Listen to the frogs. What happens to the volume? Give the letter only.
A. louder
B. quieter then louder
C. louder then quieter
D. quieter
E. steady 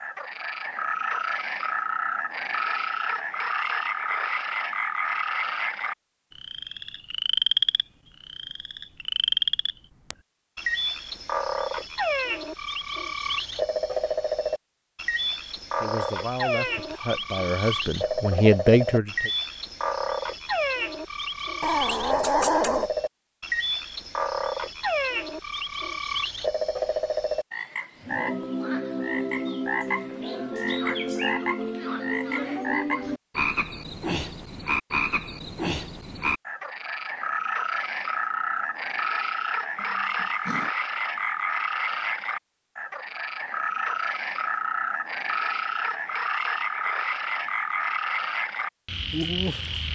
E.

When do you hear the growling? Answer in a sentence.
You can hear the growling from 21.6 to 22.9 s and from 39.8 to 40.7 s.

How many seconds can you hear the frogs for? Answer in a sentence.
The frogs can be heard for 50 seconds in total.